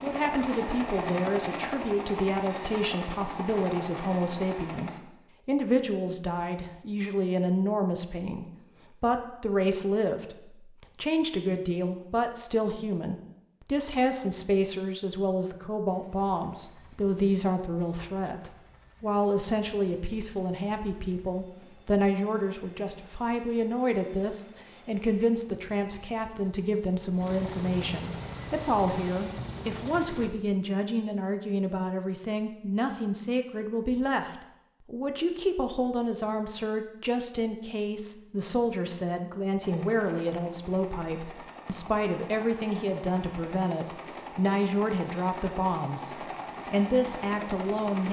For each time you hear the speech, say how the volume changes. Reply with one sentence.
The speech can be heard from 0.0 to 48.0 s, at a steady volume.